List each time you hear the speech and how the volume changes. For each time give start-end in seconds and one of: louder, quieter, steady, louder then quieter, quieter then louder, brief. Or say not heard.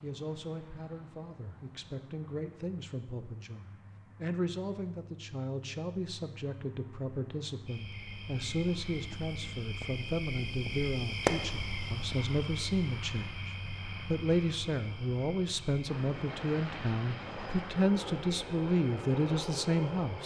0.0-20.2 louder.